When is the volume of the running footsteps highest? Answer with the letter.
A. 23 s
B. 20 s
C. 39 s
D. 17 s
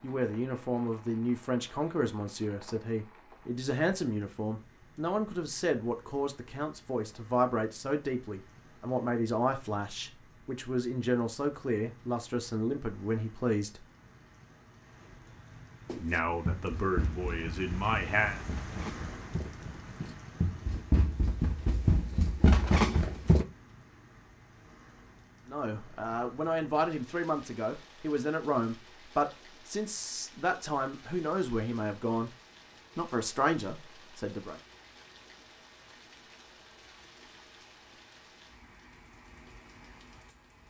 A.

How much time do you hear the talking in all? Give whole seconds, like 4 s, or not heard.
25 s.